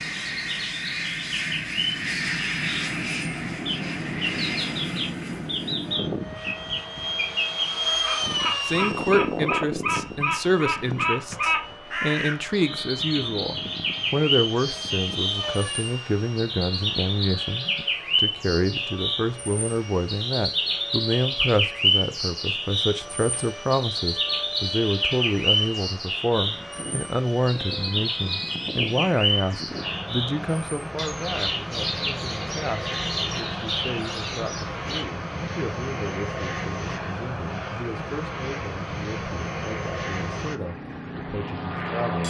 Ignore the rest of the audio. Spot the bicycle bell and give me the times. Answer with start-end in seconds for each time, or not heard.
not heard.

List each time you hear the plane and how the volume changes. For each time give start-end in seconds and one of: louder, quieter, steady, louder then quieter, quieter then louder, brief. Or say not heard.
0.0-42.2 quieter then louder.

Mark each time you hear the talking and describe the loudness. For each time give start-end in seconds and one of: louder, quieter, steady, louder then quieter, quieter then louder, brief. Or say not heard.
8.7-42.2 quieter.